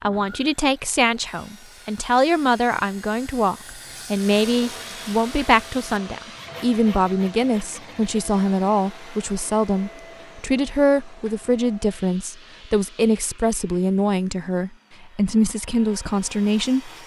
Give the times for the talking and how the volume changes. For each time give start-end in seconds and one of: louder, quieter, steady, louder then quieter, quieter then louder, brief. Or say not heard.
0.0-16.9 steady.